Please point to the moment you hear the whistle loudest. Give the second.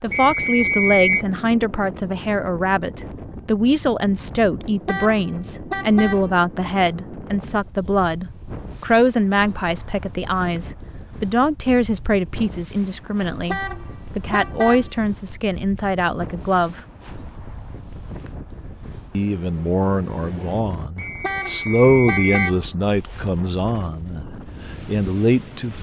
1 s.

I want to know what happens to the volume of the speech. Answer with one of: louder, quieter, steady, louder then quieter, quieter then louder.
steady.